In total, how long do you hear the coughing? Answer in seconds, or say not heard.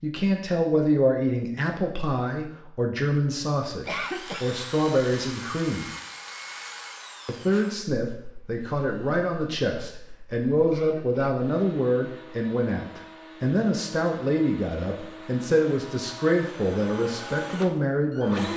2 s.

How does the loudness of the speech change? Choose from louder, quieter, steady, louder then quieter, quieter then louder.
steady.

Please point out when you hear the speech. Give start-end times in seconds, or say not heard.
0.0-5.8, 7.2-18.5.